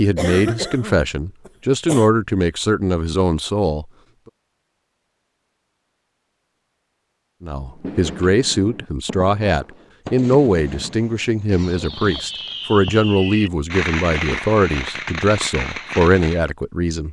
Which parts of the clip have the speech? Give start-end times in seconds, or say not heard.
0.0-3.9, 7.4-17.0.